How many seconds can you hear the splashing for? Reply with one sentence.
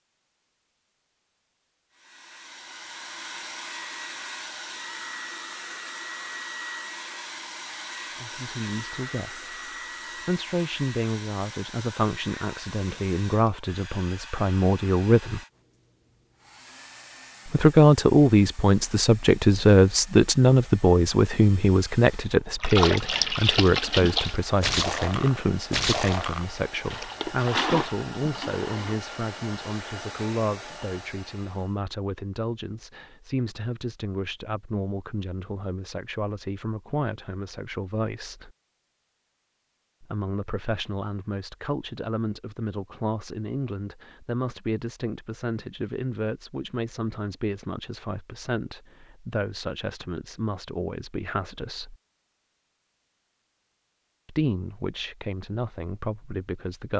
You can hear the splashing for 6 seconds altogether.